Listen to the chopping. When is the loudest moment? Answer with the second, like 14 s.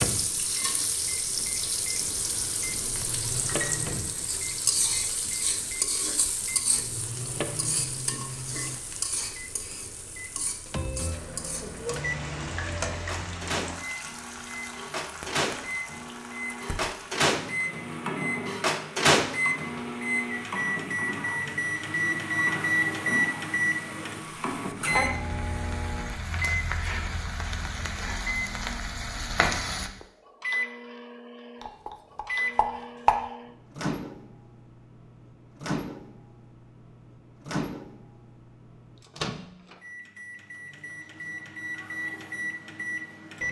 33 s.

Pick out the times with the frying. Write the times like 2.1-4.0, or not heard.
0.0-29.9.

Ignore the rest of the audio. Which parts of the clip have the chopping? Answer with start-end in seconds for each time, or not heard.
31.6-33.2.